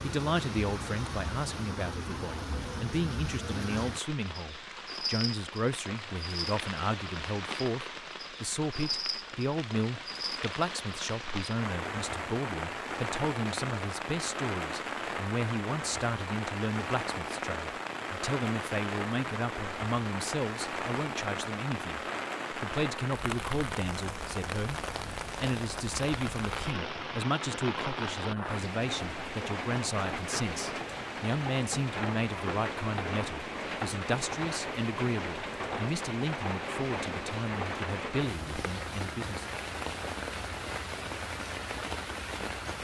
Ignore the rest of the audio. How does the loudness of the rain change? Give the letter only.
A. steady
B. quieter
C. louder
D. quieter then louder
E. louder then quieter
A.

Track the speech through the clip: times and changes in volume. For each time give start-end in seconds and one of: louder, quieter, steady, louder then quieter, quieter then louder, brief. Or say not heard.
0.0-39.5 steady.